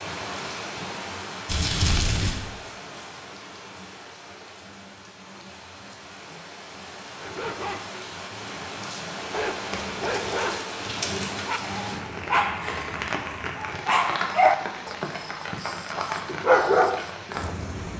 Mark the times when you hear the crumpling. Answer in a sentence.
The crumpling can be heard from 1.4 to 2.4 s and from 9.7 to 11.3 s.